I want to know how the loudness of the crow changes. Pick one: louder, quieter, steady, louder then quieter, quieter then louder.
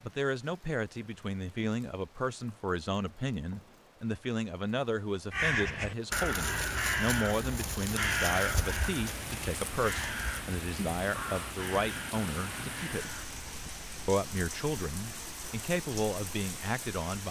quieter.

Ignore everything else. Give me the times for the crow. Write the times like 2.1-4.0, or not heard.
5.3-13.8.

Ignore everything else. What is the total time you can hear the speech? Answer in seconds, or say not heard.
16 s.